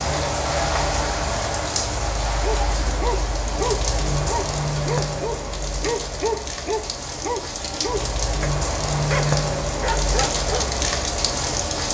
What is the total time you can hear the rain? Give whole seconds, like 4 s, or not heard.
12 s.